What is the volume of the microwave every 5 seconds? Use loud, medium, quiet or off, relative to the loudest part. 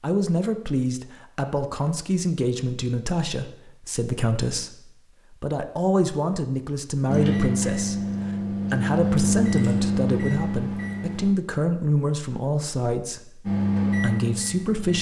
off, loud, loud.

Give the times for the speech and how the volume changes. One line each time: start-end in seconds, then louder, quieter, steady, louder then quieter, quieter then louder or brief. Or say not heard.
0.0-14.9 steady.